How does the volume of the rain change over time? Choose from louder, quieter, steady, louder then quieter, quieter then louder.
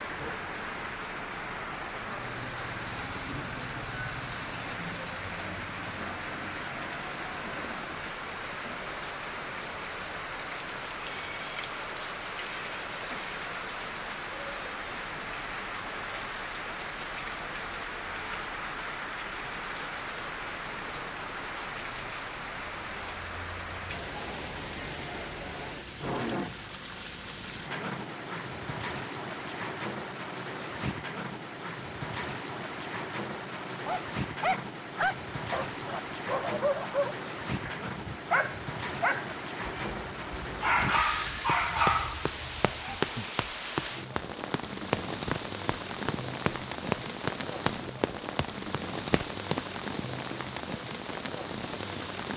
steady.